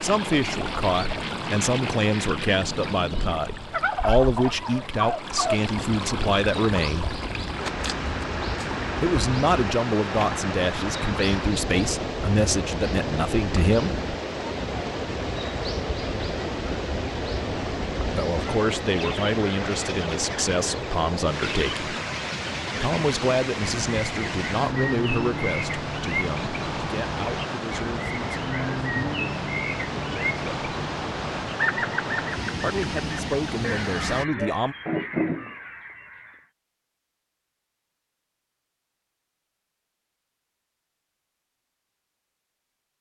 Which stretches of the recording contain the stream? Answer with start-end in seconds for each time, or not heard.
0.0-34.2.